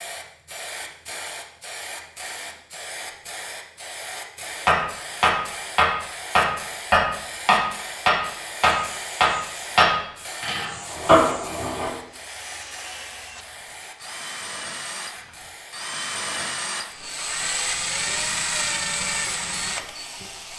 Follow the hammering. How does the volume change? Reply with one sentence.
The volume of the hammering stays about the same.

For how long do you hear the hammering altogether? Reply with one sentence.
The hammering can be heard for 7 seconds in total.